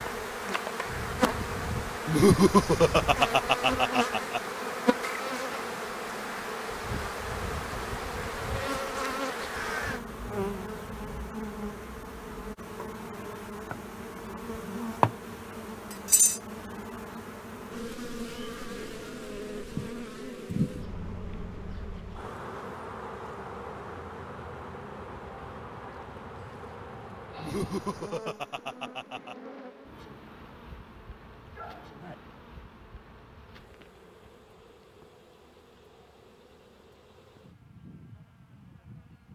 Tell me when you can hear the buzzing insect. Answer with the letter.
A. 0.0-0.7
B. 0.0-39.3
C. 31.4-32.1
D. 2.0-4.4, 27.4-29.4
B.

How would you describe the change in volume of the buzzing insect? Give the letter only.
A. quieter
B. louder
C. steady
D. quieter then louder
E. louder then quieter
A.